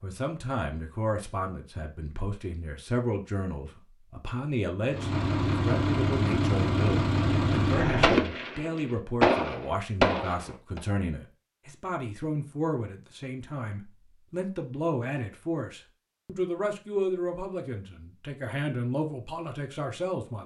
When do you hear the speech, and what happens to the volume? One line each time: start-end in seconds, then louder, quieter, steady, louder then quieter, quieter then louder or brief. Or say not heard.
0.0-20.4 steady.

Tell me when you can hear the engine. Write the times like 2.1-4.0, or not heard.
4.8-8.2.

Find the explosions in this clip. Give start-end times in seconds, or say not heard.
8.0-10.8.